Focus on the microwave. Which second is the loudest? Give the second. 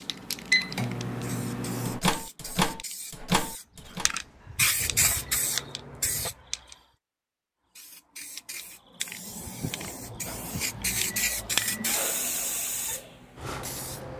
1 s.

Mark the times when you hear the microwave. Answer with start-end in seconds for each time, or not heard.
0.0-6.3, 10.2-12.6.